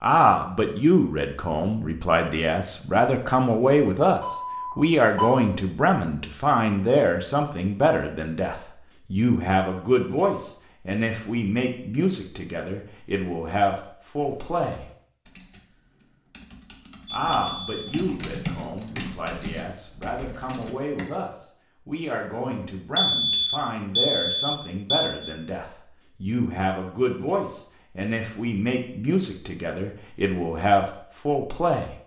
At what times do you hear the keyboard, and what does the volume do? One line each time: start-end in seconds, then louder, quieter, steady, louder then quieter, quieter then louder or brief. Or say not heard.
14.2-21.1 louder then quieter.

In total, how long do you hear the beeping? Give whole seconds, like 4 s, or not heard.
5 s.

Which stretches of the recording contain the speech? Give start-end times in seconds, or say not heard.
0.0-14.8, 17.1-31.9.